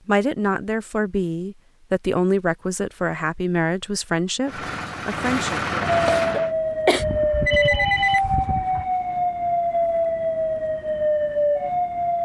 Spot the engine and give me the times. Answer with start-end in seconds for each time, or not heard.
4.5-6.5.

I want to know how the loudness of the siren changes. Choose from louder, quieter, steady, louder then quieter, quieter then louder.
steady.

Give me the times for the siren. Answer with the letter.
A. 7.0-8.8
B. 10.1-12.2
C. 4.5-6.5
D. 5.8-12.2
D.